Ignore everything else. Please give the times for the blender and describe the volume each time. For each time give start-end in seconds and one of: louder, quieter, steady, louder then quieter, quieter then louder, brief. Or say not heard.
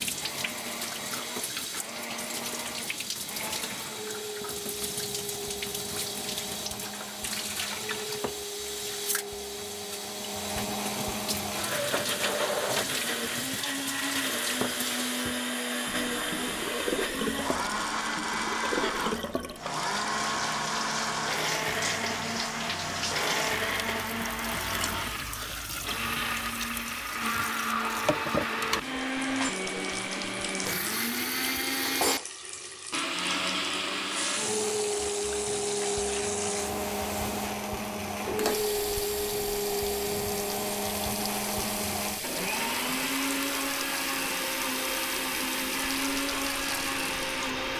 0.0-47.7 louder.